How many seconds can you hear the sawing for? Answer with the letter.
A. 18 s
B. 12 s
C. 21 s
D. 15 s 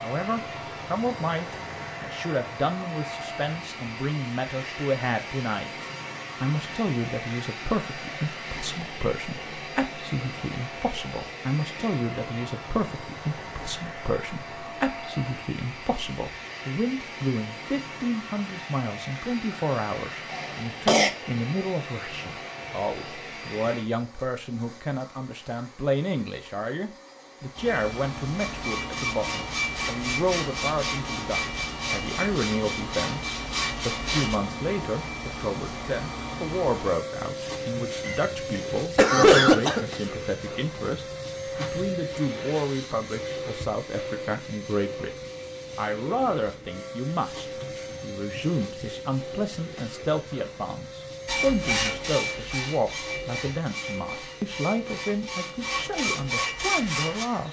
B.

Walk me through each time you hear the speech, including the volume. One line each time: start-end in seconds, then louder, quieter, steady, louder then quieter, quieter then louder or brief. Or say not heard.
0.0-57.4 steady.